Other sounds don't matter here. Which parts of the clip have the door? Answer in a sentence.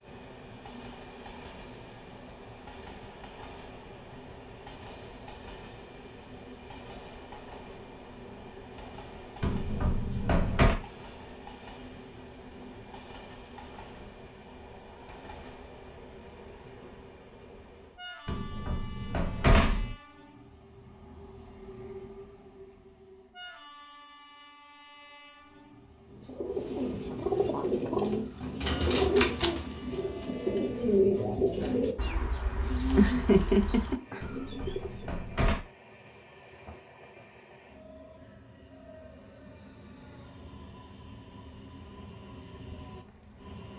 You can hear the door from 9.4 to 10.8 s, from 18.2 to 19.9 s and from 34.2 to 35.6 s.